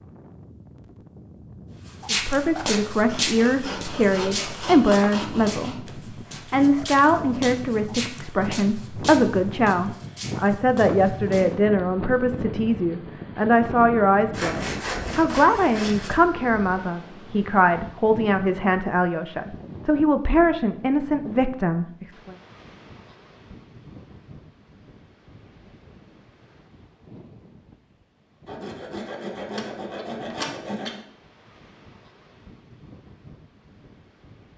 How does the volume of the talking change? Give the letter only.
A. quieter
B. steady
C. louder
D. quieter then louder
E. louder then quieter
B.